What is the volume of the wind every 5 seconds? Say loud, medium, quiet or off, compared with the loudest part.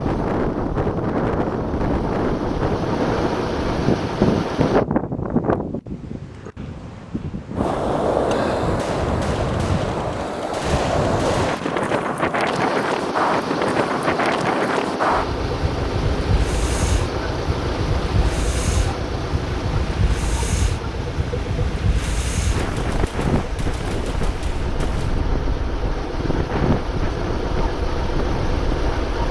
loud, loud, loud, medium, medium, medium.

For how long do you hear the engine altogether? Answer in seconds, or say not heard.
22 s.